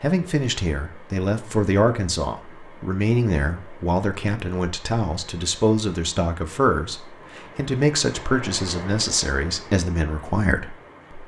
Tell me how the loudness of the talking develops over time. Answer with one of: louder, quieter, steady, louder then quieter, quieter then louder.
steady.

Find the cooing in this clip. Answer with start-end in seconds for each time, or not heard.
not heard.